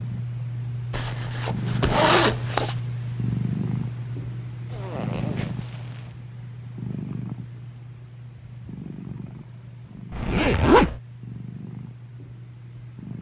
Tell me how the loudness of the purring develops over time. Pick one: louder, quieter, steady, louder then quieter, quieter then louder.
quieter.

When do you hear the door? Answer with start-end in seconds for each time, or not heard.
not heard.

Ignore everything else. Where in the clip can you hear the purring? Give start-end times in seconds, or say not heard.
0.0-13.1.